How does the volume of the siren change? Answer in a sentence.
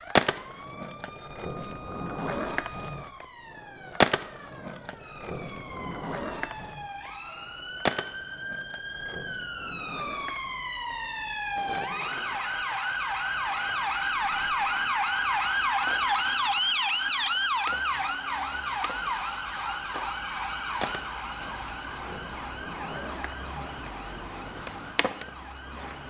The volume of the siren goes up, then down.